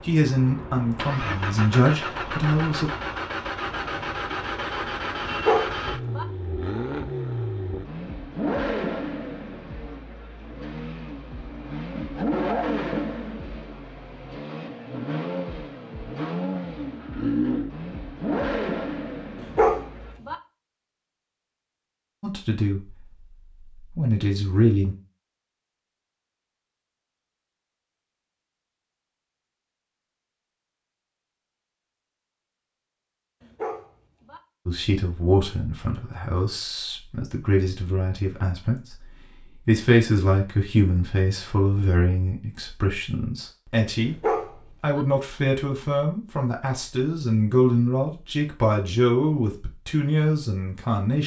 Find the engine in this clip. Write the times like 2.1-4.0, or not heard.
0.0-20.1.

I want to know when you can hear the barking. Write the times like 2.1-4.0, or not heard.
5.3-6.2, 19.4-20.4, 33.4-34.4, 44.0-45.0.